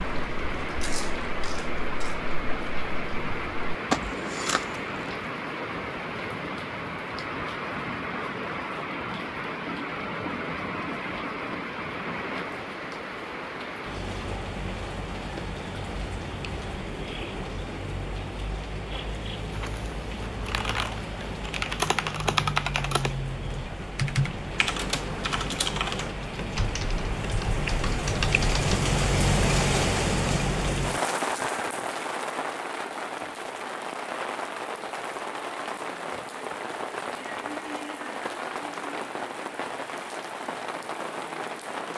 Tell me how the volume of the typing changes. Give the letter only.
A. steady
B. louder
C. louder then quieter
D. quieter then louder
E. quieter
C.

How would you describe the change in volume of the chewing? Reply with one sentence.
The loudness of the chewing goes down, then up.